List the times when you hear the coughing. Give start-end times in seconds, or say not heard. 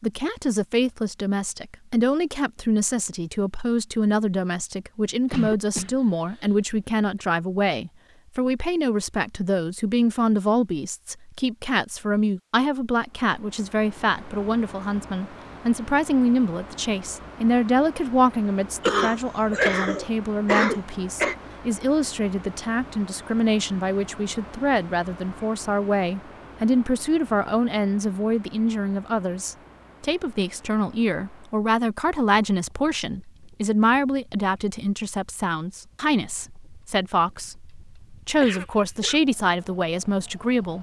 5.2-6.4, 18.8-21.4, 38.4-39.2.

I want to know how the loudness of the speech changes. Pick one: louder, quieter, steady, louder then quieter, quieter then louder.
steady.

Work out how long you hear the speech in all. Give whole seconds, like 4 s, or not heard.
41 s.